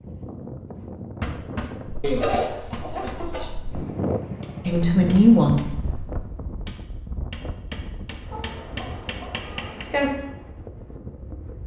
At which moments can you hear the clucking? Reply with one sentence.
The clucking can be heard from 2.0 to 3.5 s and from 8.3 to 10.1 s.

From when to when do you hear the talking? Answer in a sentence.
You can hear the talking from 4.7 to 6.2 s.